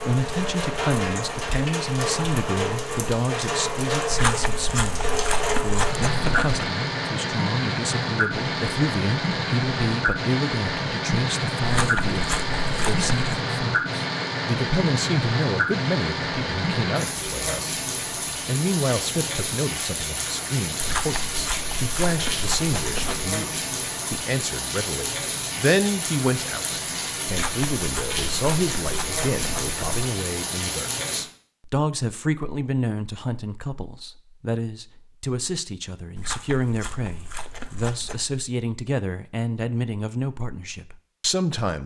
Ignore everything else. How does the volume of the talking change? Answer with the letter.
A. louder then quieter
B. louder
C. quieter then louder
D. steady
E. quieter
D.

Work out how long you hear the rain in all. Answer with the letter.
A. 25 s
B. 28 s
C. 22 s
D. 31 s
D.